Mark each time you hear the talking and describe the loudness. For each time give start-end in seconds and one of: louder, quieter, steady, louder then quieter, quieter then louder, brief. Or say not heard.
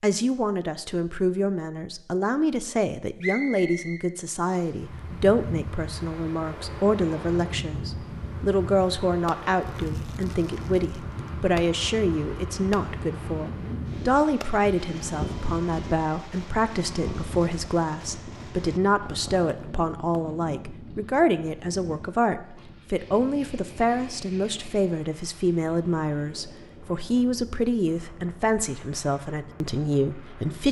0.0-30.6 steady.